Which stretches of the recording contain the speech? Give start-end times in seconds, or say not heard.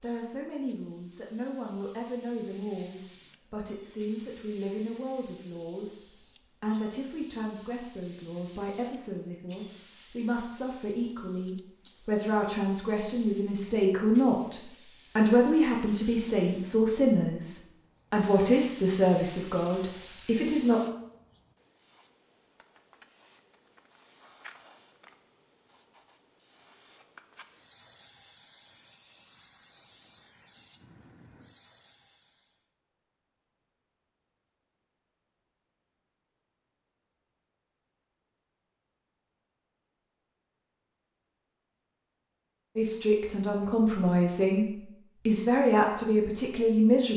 0.0-20.8, 42.8-47.1.